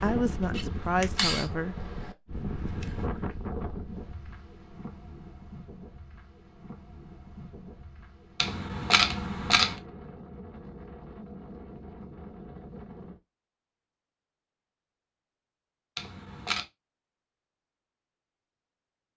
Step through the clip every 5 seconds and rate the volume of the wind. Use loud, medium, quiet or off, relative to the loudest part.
loud, medium, medium, off.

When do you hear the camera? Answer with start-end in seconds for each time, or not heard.
0.5-1.5, 8.4-9.8, 15.9-16.6.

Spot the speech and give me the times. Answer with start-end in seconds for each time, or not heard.
0.0-1.8.